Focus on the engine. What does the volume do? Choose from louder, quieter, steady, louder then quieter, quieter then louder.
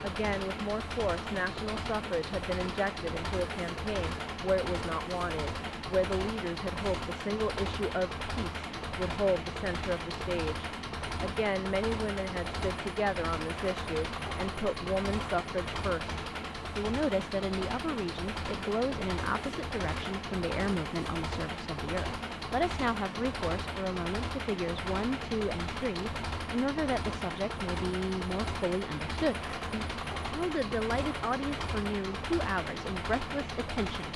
steady.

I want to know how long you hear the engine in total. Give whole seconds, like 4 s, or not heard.
34 s.